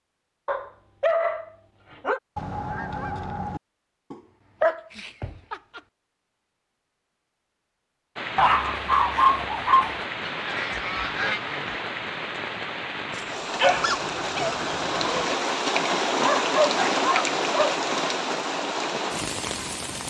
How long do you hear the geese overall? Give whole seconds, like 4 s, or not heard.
5 s.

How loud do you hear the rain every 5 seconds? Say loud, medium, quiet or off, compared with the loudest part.
off, medium, medium, loud.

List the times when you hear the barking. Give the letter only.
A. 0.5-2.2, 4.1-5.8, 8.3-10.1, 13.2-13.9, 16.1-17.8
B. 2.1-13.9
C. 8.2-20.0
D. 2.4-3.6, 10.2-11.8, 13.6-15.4
A.